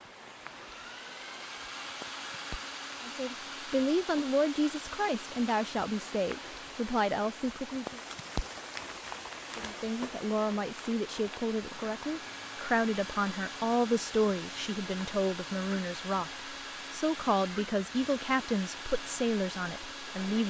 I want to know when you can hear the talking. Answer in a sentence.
You can hear the talking from 3.0 to 8.0 s and from 9.6 to 20.4 s.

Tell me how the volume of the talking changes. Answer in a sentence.
The volume of the talking stays about the same.